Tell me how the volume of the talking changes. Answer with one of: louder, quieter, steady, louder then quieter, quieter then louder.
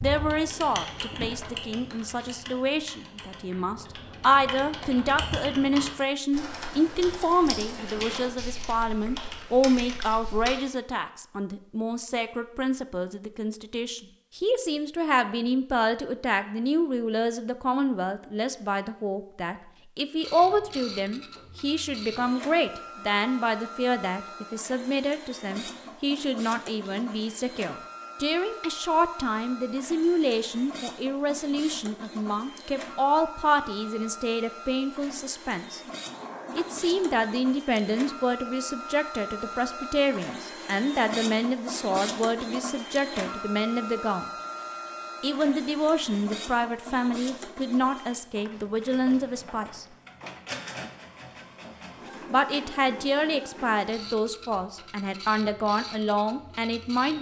steady.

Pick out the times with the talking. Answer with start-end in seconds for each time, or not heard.
0.0-35.8, 36.5-44.3, 45.2-49.9, 52.3-57.1.